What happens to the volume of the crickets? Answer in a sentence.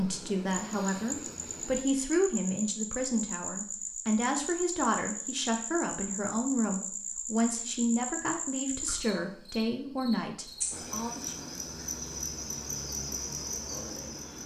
The volume of the crickets stays about the same.